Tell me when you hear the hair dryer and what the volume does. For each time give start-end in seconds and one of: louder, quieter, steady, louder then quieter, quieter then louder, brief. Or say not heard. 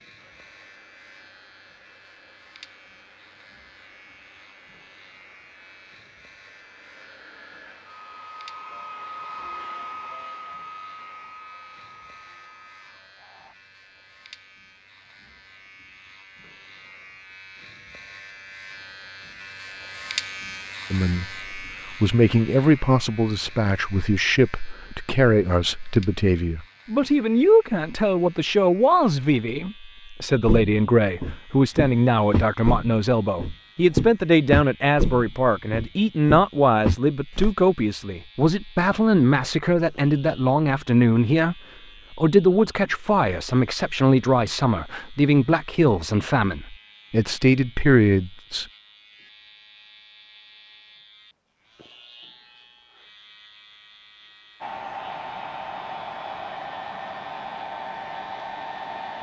0.0-13.6 louder then quieter
54.6-59.1 steady.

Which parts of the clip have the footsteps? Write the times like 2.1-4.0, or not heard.
30.4-37.5.